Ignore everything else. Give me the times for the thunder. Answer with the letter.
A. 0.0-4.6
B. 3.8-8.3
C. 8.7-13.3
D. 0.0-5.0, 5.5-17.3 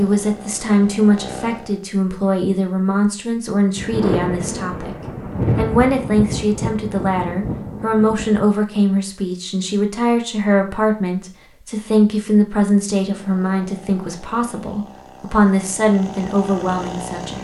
B.